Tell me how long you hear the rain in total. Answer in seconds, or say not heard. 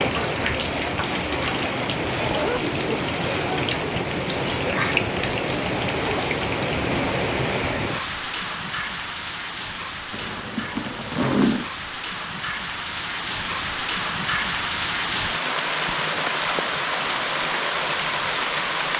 19 s.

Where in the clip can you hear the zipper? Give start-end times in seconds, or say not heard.
2.2-2.6, 10.1-11.7.